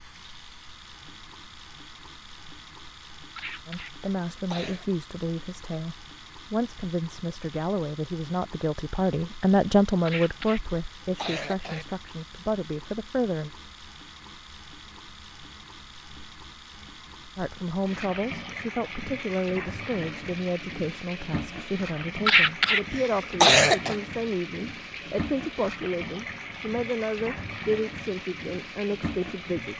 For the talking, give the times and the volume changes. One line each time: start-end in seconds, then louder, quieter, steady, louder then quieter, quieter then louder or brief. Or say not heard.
3.6-13.5 louder then quieter
17.4-29.7 steady.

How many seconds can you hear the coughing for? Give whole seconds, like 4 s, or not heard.
5 s.